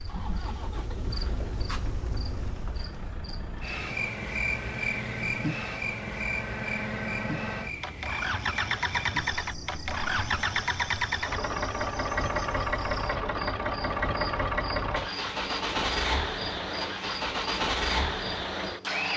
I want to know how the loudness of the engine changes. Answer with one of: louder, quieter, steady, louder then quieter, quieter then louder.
louder.